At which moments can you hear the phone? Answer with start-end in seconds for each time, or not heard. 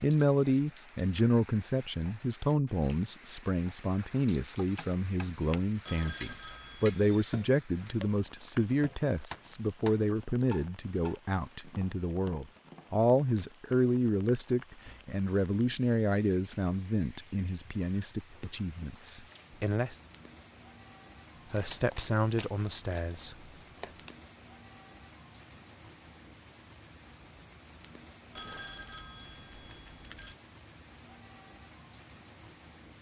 5.8-7.1, 28.4-30.4.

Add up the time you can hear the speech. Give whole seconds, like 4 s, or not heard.
22 s.